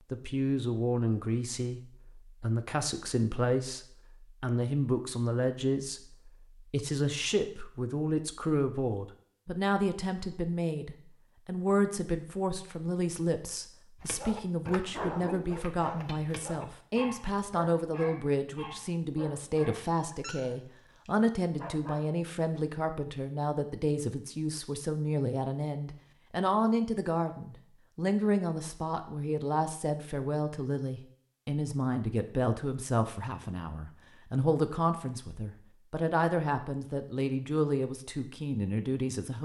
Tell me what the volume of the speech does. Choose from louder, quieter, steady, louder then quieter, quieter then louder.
steady.